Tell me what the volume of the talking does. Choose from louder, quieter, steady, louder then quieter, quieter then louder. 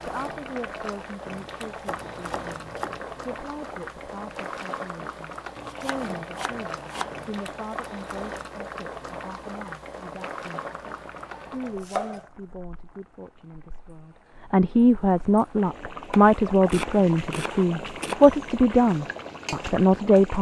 louder.